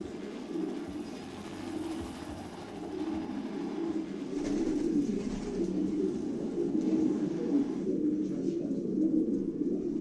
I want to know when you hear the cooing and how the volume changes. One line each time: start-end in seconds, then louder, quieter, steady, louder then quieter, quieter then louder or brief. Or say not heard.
0.0-9.9 louder.